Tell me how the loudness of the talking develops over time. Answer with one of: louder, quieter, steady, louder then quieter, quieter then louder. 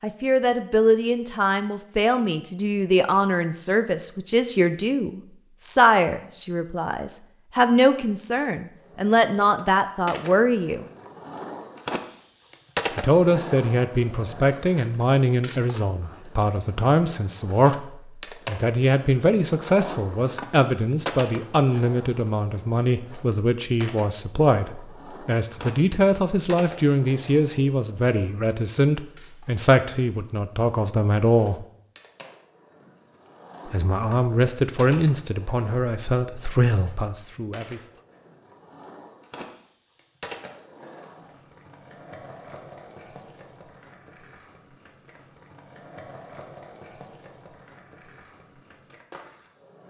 steady.